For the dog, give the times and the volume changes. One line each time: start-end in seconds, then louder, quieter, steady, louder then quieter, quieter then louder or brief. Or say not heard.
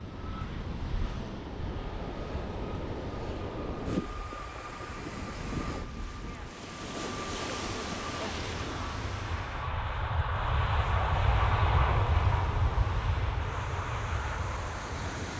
not heard.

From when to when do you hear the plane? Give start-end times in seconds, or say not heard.
0.0-15.3.